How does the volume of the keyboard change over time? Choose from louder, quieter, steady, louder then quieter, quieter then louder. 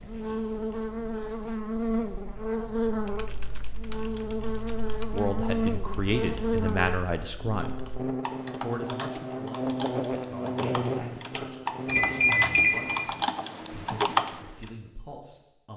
louder.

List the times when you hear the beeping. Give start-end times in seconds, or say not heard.
11.8-13.1.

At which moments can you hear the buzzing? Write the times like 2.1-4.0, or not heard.
0.0-12.3.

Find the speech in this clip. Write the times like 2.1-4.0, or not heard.
5.0-7.9, 8.6-15.7.